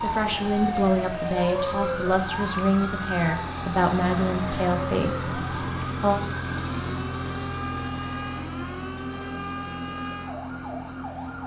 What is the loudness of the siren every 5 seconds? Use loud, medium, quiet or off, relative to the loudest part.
loud, medium, medium.